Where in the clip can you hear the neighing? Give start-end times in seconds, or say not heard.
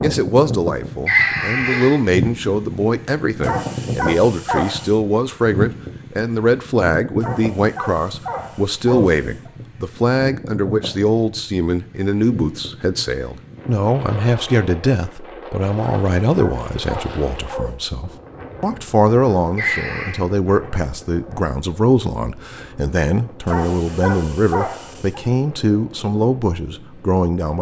1.1-1.9, 19.6-20.2.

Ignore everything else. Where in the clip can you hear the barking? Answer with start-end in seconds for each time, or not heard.
3.4-4.9, 7.2-9.5, 15.8-17.8, 23.4-25.2.